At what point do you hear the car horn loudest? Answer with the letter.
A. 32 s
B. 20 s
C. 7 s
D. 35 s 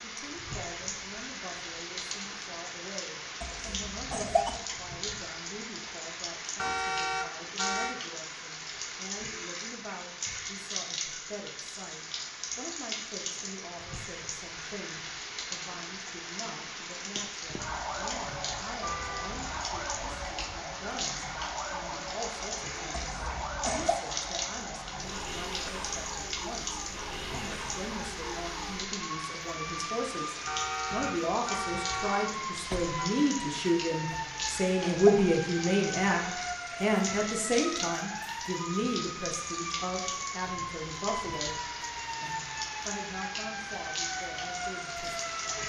C.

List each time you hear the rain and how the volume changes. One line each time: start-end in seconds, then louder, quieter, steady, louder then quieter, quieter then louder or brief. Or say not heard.
0.0-45.6 steady.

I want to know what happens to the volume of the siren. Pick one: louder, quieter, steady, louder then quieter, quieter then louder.
steady.